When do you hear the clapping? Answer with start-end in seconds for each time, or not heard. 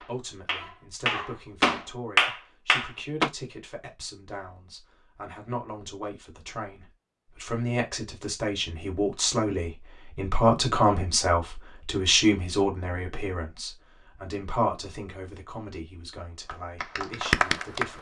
0.0-3.3, 16.4-17.9.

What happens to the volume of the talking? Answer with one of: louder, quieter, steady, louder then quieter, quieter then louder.
louder then quieter.